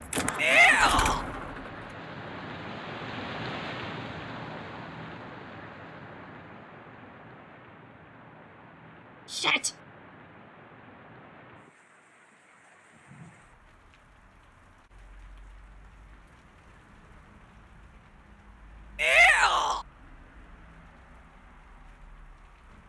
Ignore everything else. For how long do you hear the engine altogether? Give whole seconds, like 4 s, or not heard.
2 s.